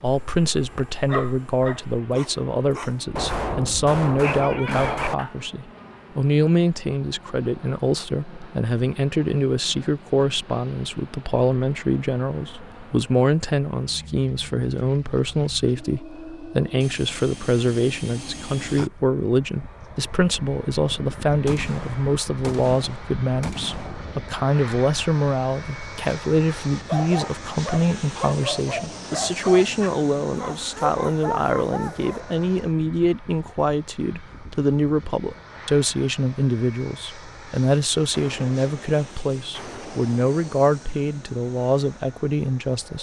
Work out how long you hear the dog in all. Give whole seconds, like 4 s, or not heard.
11 s.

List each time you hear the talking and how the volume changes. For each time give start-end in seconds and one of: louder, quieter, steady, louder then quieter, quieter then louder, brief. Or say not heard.
0.0-42.9 steady.